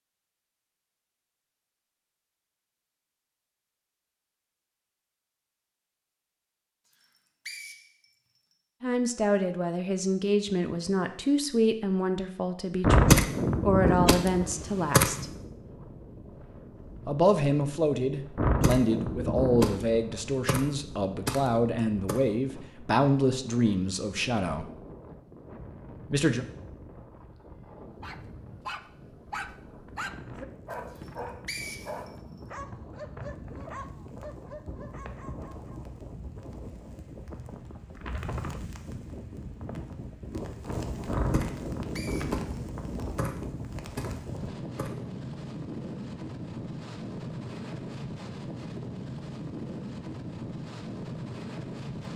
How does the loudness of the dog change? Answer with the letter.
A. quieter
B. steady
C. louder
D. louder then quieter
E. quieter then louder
A.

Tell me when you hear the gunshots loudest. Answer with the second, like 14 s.
13 s.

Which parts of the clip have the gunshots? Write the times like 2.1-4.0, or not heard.
12.8-15.4, 18.4-22.2, 41.0-44.9.